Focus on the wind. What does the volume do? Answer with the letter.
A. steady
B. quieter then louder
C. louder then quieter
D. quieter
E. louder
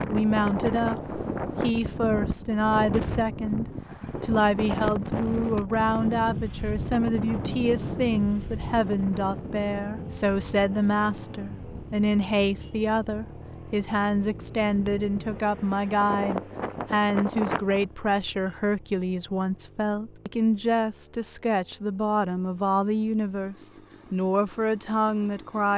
B.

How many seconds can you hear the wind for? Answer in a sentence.
The wind can be heard for 18 seconds in total.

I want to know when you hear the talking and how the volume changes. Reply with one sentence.
The talking can be heard from 0.1 to 25.7 s, at a steady volume.